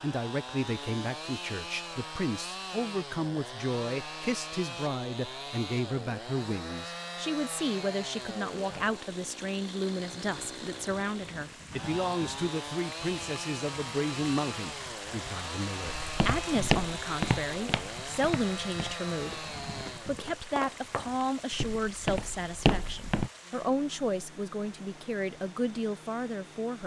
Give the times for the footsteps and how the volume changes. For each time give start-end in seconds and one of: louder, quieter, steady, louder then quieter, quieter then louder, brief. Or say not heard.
15.8-23.3 quieter then louder.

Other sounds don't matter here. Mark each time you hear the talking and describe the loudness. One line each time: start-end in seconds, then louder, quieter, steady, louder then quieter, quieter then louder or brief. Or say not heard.
0.0-26.8 steady.